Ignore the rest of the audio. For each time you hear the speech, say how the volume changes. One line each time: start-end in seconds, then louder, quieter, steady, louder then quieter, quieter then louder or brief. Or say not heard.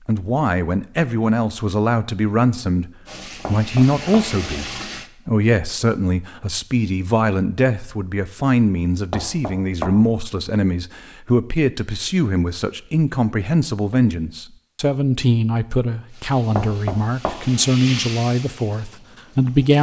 0.1-19.7 steady.